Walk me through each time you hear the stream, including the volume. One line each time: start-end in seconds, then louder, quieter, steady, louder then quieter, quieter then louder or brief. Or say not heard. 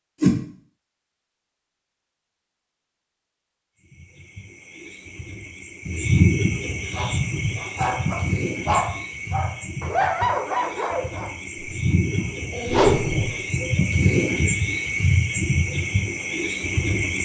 not heard.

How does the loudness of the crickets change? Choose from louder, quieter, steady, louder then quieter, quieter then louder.
quieter then louder.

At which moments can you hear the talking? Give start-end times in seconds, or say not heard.
not heard.